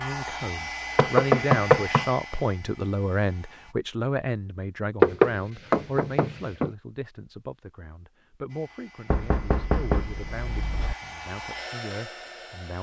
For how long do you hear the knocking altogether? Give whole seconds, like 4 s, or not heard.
5 s.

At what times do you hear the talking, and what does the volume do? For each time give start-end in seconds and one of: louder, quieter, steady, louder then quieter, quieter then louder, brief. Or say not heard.
0.0-12.7 quieter.